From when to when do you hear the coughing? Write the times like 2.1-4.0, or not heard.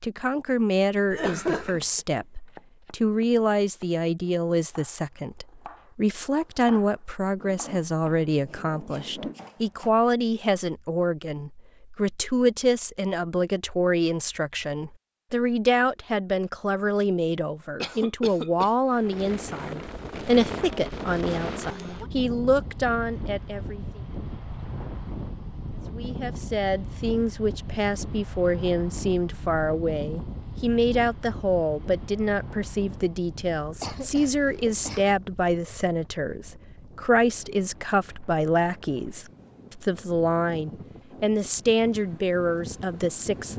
1.1-2.0, 17.8-18.7, 33.8-35.1.